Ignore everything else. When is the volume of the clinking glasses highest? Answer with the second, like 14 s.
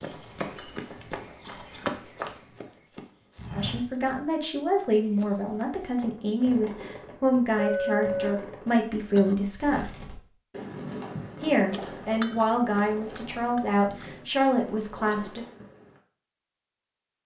8 s.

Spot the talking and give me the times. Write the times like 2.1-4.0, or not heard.
3.5-9.9, 11.4-15.4.